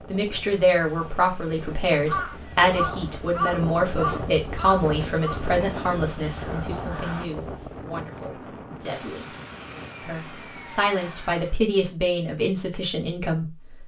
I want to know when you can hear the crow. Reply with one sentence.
The crow can be heard from 1.9 to 7.2 s.